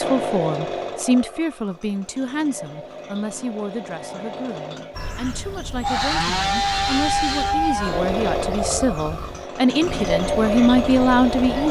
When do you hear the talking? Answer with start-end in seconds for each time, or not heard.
0.0-11.6.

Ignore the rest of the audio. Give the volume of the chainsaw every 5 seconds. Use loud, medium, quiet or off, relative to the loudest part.
medium, loud, loud.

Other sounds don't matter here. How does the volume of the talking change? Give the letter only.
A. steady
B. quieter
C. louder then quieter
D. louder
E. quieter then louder
E.